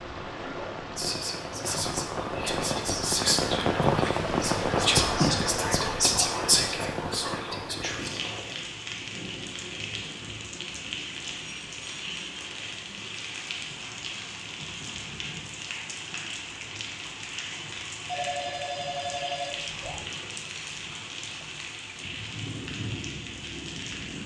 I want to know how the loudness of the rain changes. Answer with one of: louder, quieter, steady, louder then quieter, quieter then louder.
quieter.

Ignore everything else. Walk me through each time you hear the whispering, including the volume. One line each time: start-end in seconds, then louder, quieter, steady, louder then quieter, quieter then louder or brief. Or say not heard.
0.9-8.6 louder then quieter.